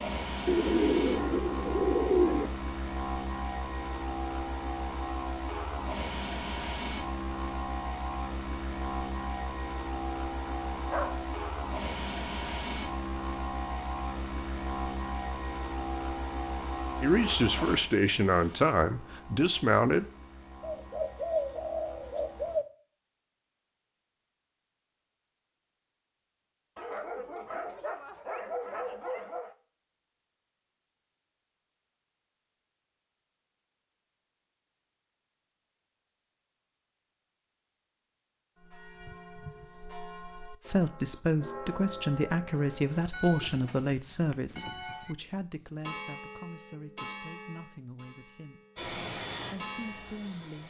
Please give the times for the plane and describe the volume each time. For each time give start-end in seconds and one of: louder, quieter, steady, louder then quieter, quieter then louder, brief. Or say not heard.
0.0-22.6 quieter
48.8-50.6 brief.